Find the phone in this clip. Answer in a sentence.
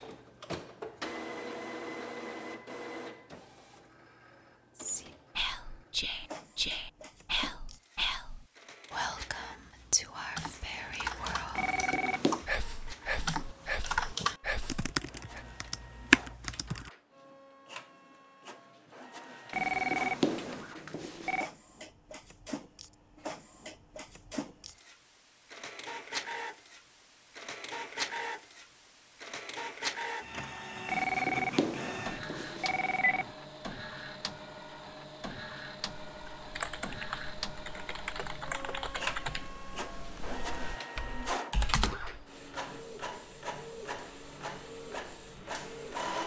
The phone can be heard from 11.6 to 12.4 s, from 19.5 to 21.5 s and from 30.9 to 33.3 s.